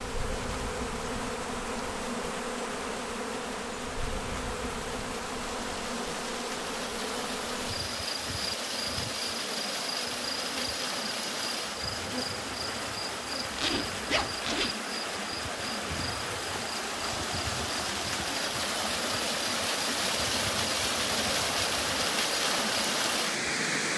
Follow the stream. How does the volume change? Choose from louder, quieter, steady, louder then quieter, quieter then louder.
louder.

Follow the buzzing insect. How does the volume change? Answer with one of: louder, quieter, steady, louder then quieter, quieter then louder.
quieter.